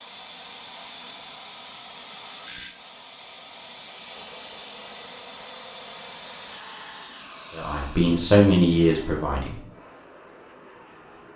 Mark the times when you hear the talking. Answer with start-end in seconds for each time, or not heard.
7.5-9.6.